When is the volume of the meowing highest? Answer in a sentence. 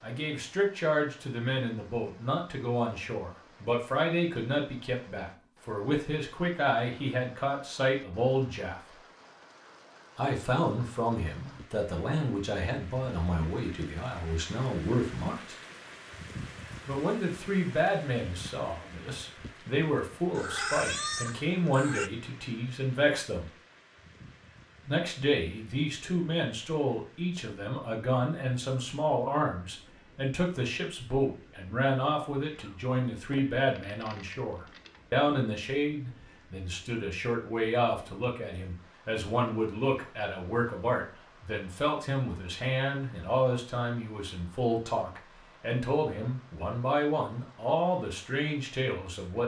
The volume of the meowing peaks at 21 seconds.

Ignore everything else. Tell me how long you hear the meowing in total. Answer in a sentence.
You can hear the meowing for 3 seconds altogether.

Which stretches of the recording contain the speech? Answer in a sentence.
You can hear the speech from 0.0 to 8.9 s, from 10.2 to 15.6 s, from 16.9 to 23.5 s and from 24.9 to 49.4 s.